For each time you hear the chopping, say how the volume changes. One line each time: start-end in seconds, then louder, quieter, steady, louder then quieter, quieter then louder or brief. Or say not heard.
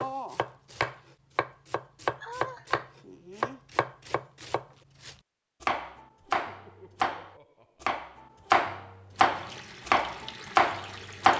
0.0-11.3 louder.